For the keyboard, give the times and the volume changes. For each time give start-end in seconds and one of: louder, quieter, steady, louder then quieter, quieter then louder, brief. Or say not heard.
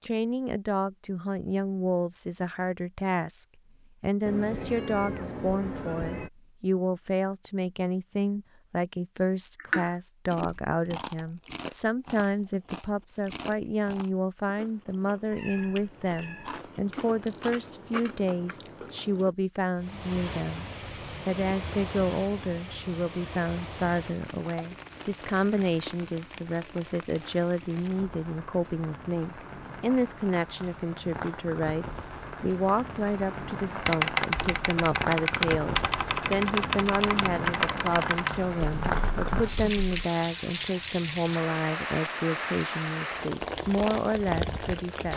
33.9-40.0 quieter.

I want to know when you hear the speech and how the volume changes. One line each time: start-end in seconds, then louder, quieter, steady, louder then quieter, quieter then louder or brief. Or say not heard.
0.0-20.6 steady
21.2-45.1 steady.